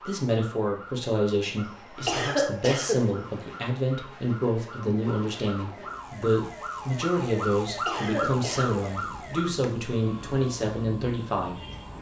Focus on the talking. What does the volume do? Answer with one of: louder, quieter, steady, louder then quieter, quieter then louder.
steady.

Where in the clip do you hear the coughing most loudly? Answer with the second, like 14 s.
2 s.